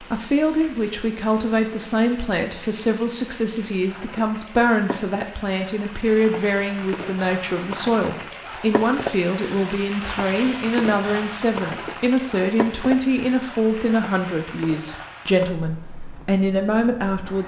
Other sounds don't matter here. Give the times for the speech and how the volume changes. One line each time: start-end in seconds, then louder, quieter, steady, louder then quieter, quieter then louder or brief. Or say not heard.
0.0-17.4 steady.